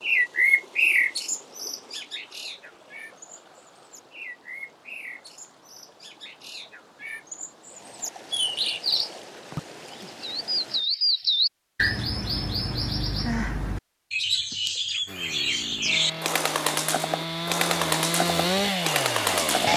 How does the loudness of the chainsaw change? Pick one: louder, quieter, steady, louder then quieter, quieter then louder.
louder.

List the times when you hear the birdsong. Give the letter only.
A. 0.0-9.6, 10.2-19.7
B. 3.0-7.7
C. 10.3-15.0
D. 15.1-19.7
A.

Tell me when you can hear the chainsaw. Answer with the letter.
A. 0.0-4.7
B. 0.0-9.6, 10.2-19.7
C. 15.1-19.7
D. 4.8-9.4
C.